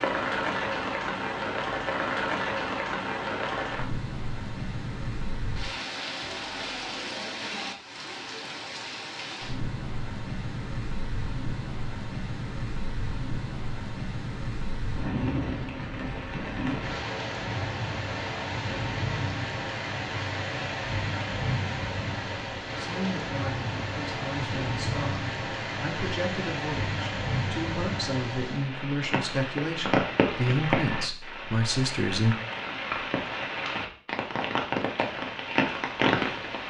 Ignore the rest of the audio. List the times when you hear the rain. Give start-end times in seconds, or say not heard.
0.0-36.6.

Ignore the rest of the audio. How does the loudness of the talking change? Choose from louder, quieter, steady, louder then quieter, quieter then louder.
louder.